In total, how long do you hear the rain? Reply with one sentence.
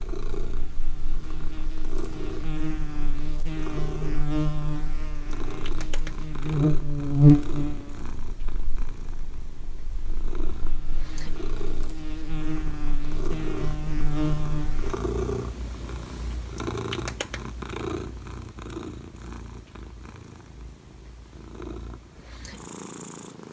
The rain can't be heard in this clip.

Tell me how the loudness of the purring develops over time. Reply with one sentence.
The loudness of the purring goes up, then down.